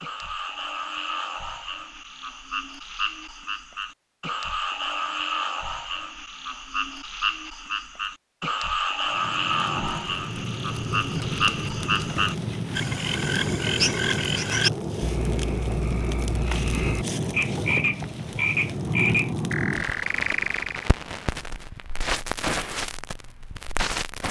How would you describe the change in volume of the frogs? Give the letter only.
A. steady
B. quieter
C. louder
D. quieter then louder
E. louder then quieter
C.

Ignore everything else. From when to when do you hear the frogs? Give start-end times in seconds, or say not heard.
0.0-20.9.